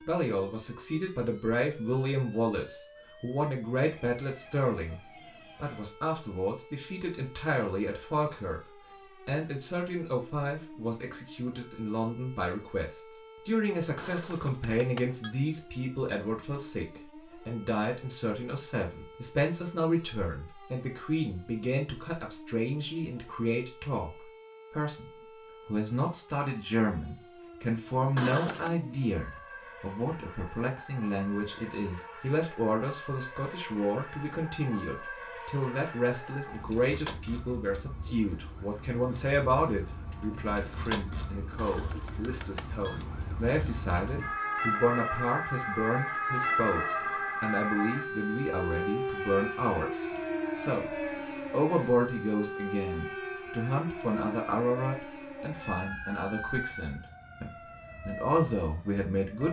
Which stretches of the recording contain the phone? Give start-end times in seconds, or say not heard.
13.9-15.3, 28.1-28.8, 41.5-43.0.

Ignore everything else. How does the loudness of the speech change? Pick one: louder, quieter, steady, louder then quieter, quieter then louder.
steady.